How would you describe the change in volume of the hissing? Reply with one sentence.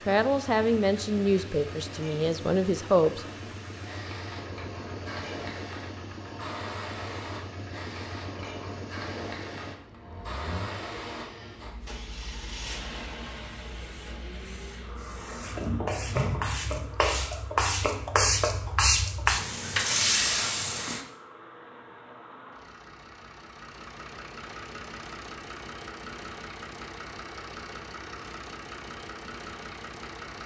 The volume of the hissing goes up.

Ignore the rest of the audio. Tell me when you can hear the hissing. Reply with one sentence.
You can hear the hissing from 0.1 to 21.1 s.